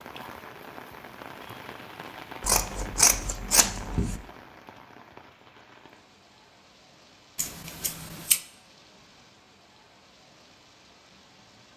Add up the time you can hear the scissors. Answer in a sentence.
You can hear the scissors for 3 seconds altogether.